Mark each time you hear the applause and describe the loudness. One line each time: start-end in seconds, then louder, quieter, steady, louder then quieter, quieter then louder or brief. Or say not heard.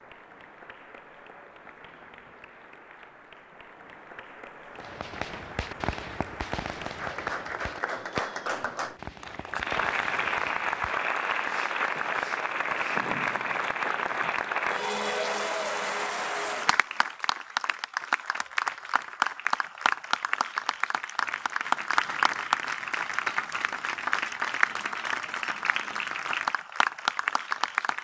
0.0-27.9 louder.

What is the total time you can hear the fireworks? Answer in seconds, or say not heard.
8 s.